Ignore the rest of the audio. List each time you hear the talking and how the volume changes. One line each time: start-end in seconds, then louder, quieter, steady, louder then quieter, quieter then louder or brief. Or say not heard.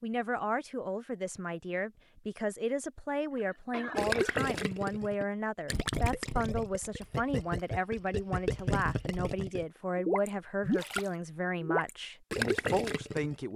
0.0-13.5 steady.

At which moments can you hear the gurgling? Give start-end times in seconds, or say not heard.
4.0-13.3.